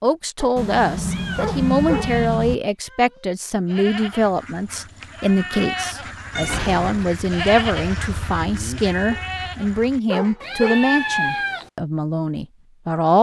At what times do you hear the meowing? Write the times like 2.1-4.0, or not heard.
0.6-2.5, 6.3-7.0, 10.4-11.7.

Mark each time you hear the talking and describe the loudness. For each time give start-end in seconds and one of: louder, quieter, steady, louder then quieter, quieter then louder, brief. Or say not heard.
0.0-13.1 steady.